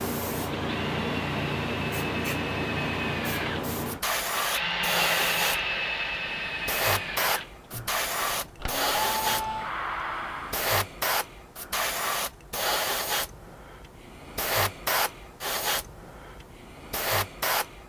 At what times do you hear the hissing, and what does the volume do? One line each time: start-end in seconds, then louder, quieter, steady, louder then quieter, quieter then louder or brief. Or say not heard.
0.0-17.8 steady.